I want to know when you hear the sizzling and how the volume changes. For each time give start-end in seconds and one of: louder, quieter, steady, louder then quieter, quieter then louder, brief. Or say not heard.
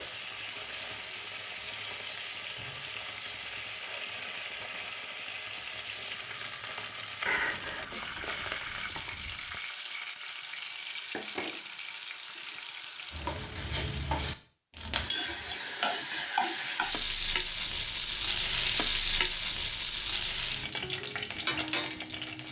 0.0-22.4 louder.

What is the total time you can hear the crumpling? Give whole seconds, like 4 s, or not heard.
2 s.